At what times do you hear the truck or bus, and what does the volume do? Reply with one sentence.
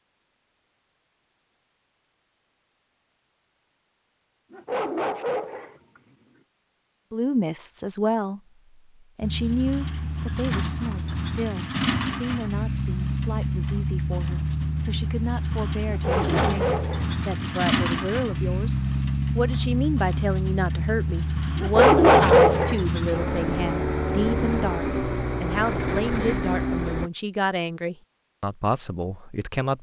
The truck or bus can be heard from 9.2 to 27.1 s, at a steady volume.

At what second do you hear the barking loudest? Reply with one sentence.
The loudest moment of the barking is at 22 seconds.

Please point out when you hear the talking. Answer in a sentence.
The talking can be heard from 7.1 to 8.4 s and from 9.2 to 29.7 s.